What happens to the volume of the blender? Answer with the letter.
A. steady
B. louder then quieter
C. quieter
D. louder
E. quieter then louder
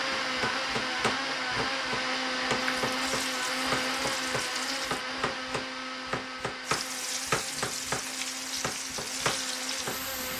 C.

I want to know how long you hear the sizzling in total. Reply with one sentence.
You can hear the sizzling for 6 seconds altogether.